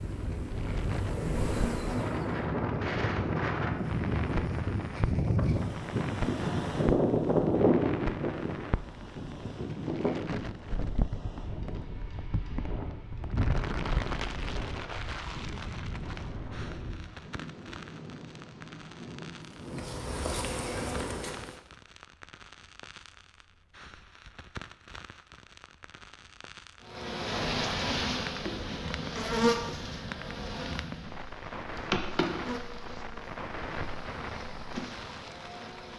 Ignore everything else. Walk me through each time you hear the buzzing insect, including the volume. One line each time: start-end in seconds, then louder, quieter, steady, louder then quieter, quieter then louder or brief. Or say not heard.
0.0-2.5 brief
19.4-21.6 brief
26.9-35.9 quieter.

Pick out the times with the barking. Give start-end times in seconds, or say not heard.
not heard.